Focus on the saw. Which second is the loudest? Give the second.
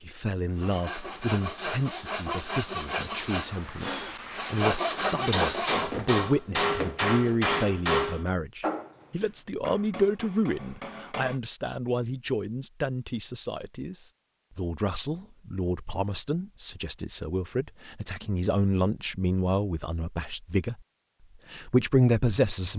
5 s.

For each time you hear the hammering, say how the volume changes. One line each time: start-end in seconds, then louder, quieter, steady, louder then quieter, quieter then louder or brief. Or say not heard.
5.2-11.4 quieter.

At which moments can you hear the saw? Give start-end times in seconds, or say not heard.
0.6-5.9.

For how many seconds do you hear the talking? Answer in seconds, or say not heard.
22 s.